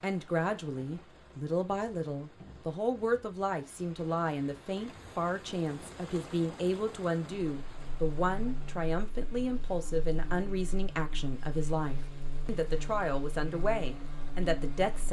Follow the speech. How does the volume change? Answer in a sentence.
The loudness of the speech stays about the same.